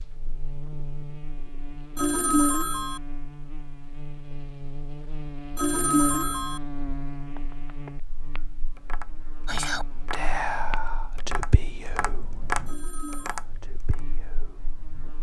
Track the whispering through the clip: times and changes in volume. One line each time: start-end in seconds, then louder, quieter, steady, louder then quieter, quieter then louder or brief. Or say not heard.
9.4-15.1 quieter.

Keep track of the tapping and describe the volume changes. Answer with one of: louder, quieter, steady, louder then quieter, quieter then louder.
louder.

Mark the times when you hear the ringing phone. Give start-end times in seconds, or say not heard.
1.9-3.0, 5.5-6.6, 12.7-13.4.